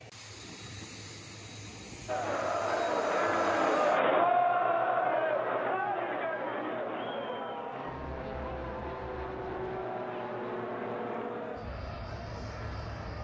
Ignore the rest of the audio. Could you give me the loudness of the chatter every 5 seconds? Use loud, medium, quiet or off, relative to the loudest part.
loud, medium, quiet.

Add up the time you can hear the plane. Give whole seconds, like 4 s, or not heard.
13 s.